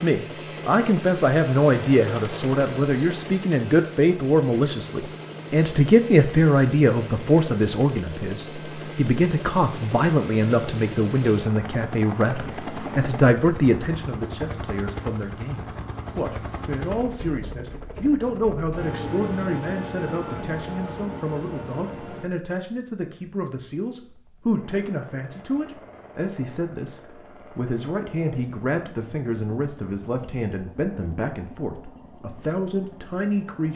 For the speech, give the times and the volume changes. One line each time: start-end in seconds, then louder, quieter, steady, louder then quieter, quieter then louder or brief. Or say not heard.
0.0-33.7 quieter.